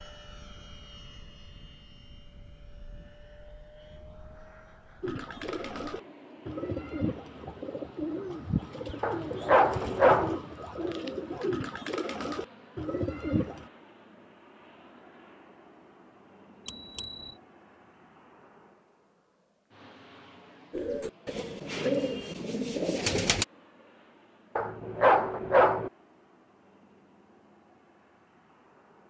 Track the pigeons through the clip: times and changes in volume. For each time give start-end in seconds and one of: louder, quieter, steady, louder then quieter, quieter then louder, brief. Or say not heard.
5.0-13.7 steady
20.7-23.4 brief.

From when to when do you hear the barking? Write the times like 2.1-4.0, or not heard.
9.0-10.4, 24.6-25.9.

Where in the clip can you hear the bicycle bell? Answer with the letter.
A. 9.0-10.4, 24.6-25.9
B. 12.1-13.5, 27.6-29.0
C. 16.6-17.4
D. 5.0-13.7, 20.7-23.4
C.